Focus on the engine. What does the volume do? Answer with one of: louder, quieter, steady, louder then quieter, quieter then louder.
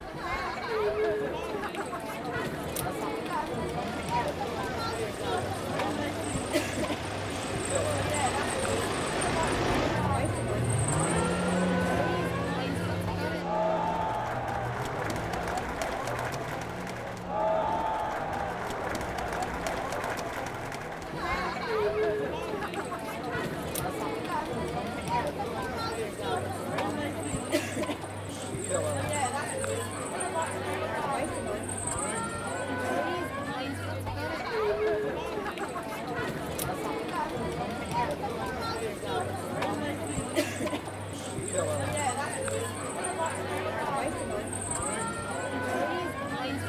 louder then quieter.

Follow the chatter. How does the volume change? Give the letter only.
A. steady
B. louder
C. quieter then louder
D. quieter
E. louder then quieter
A.